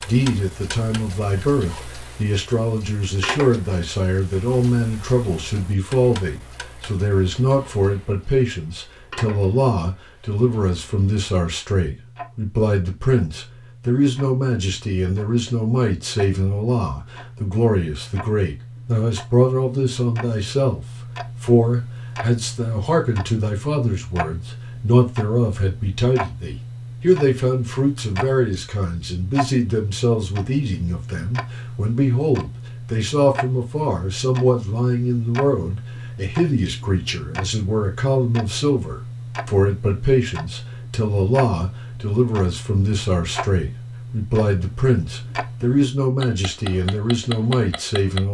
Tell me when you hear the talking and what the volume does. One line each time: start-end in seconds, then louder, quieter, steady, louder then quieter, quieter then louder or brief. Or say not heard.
0.0-48.2 steady.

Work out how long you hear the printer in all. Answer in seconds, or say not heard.
not heard.